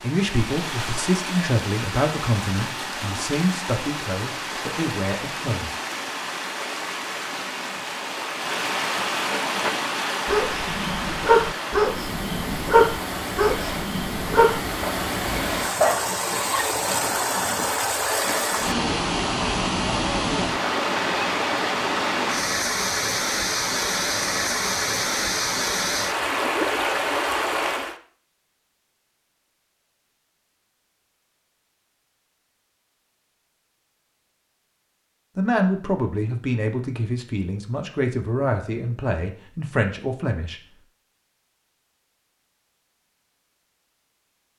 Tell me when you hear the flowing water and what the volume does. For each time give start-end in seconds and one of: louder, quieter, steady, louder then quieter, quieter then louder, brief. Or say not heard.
0.0-27.9 louder.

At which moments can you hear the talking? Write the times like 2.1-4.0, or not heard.
0.0-5.8, 35.4-40.6.